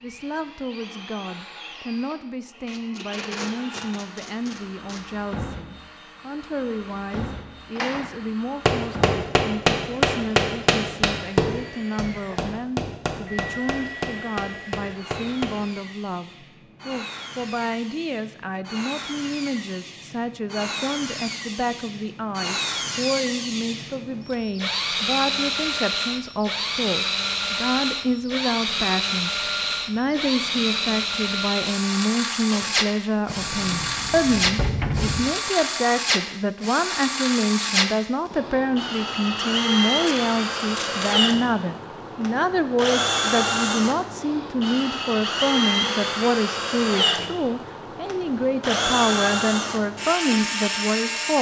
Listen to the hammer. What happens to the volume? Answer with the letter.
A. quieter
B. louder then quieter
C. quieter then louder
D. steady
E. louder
A.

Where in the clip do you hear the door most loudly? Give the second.
35 s.